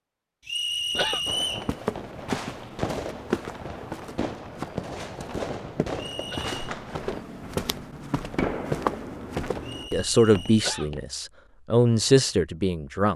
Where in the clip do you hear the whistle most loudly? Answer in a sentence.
The loudest moment of the whistle is at 1 second.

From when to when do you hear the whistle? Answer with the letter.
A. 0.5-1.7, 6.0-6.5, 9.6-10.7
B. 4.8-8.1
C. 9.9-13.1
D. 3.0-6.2
A.